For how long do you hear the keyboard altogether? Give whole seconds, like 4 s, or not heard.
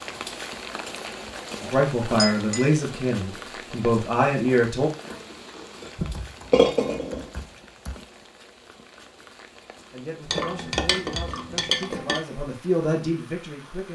2 s.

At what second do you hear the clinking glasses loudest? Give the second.
7 s.